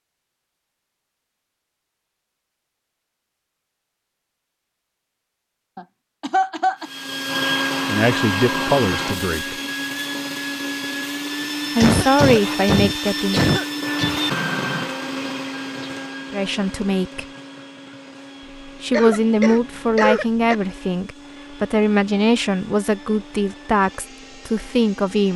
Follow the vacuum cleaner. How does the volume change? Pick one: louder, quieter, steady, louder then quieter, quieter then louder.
quieter.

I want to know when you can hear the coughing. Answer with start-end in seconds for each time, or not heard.
5.8-6.9, 11.8-14.2, 18.9-20.6.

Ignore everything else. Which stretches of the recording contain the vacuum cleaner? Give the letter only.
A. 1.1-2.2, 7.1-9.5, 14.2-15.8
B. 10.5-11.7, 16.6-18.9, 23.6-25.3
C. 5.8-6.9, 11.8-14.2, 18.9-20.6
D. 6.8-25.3
D.